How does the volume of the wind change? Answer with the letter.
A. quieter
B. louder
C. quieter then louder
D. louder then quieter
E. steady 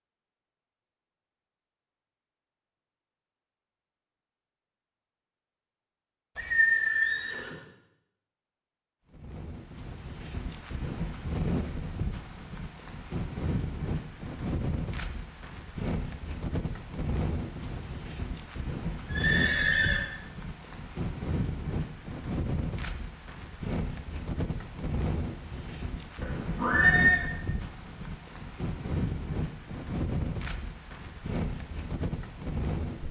E.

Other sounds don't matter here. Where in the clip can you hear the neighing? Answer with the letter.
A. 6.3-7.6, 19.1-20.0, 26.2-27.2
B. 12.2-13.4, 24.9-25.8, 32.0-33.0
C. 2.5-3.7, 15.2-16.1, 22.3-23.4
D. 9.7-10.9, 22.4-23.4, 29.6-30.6
A.